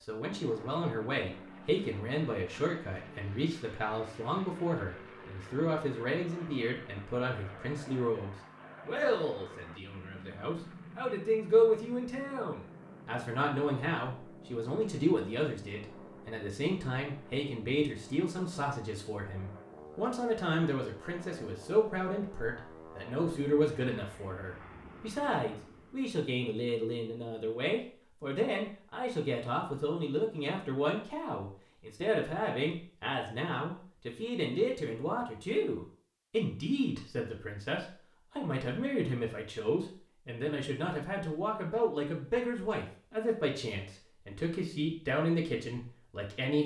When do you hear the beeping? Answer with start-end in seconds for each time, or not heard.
not heard.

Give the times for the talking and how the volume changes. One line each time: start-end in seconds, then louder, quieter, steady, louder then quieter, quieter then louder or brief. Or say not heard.
0.0-46.6 steady.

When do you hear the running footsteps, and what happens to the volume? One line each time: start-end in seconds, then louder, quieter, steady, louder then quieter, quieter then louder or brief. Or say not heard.
not heard.